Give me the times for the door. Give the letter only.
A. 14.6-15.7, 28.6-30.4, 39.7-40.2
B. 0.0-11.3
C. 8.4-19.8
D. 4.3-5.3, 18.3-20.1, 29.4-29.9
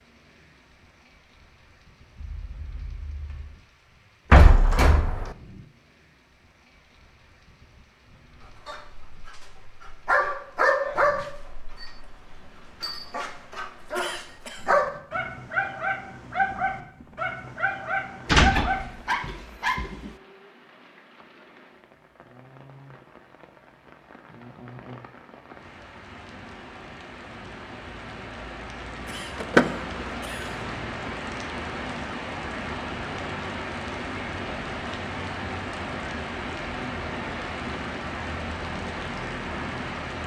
D.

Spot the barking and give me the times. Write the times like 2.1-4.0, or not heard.
8.4-19.8.